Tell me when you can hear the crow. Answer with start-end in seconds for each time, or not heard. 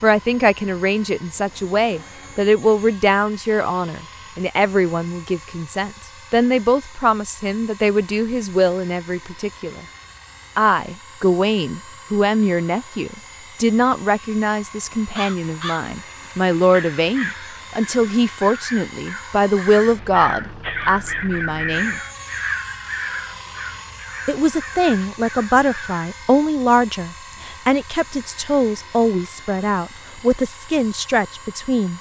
15.1-26.1.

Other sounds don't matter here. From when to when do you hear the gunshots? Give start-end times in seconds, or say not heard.
not heard.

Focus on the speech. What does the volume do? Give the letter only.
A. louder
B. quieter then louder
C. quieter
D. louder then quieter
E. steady
E.